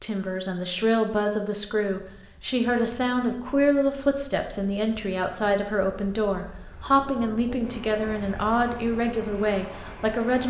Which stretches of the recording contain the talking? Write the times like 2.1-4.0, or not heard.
0.0-10.4.